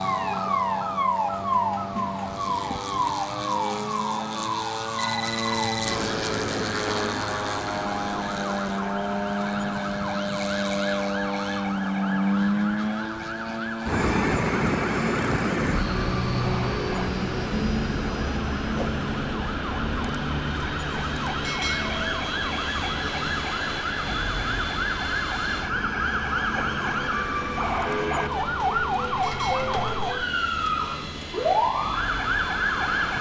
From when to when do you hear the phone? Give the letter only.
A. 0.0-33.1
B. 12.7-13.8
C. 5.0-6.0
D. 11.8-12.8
C.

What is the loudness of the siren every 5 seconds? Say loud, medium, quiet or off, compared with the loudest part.
loud, medium, medium, medium, medium, loud, loud.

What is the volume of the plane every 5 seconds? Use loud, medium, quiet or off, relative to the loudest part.
medium, loud, loud, loud, medium, medium, medium.